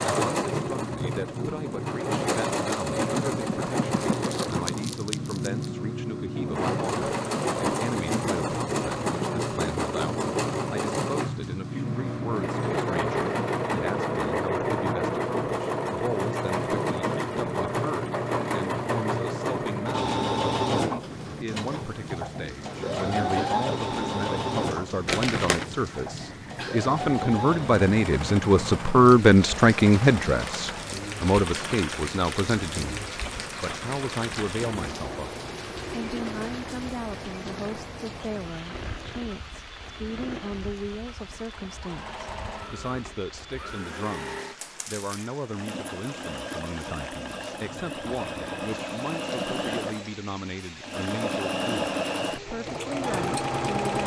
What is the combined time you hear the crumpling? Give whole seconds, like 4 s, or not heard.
3 s.